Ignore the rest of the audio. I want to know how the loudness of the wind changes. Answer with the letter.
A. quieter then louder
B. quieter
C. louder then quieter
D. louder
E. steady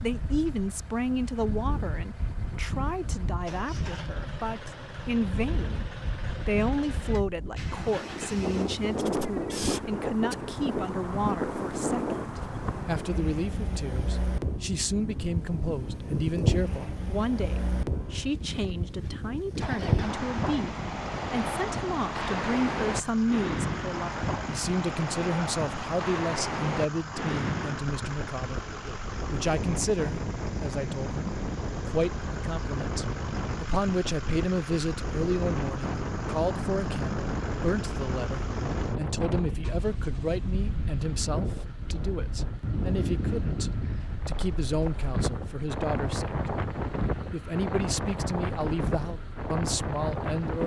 E.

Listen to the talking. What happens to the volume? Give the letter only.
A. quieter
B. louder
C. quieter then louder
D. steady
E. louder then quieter
D.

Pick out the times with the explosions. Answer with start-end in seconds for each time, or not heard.
not heard.